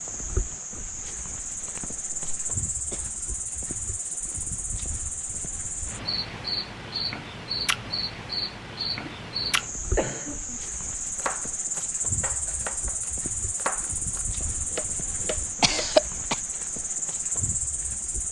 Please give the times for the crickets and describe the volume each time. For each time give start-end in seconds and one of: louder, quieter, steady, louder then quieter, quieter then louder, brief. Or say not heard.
0.0-18.2 steady.